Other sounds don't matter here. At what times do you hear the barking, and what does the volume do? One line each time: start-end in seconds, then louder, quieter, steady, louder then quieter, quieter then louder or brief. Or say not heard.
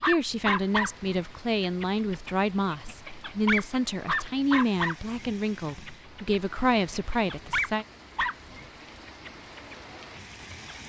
0.0-10.8 quieter.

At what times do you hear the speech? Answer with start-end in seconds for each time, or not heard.
0.0-7.8.